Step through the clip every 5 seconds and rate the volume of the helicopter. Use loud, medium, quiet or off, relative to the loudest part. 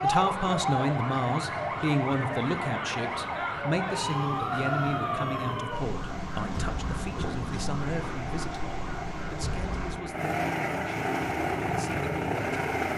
medium, medium, loud.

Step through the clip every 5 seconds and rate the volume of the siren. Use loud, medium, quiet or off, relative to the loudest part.
loud, medium, off.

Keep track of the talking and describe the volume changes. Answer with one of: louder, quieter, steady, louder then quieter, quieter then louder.
quieter.